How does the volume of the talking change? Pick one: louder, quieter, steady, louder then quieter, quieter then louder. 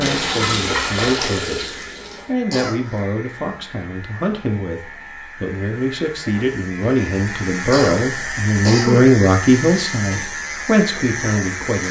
louder.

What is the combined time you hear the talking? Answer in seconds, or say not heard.
12 s.